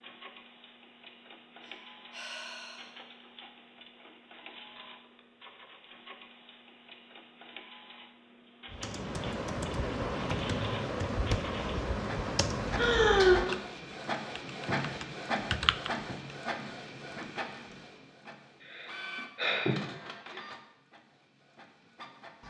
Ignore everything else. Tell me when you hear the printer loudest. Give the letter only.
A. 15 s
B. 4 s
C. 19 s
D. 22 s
A.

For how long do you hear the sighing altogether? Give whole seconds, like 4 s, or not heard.
4 s.